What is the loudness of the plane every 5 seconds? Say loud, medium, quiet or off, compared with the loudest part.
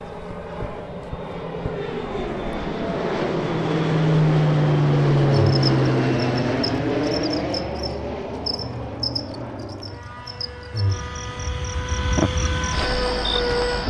loud, loud, medium.